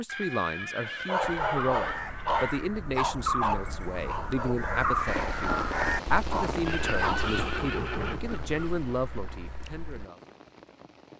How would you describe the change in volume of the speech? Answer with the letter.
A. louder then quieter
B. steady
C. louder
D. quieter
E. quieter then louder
B.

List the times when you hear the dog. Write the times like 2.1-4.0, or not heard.
0.8-7.2.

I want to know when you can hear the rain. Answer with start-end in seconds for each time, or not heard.
5.0-11.1.